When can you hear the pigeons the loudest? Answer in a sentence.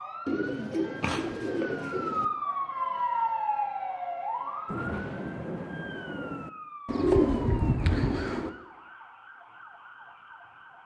The volume of the pigeons peaks at 7 seconds.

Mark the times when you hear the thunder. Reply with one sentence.
You can hear the thunder from 4.7 to 6.5 s.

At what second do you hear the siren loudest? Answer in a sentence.
The volume of the siren peaks at 3 seconds.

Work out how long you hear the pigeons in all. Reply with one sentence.
You can hear the pigeons for 4 seconds altogether.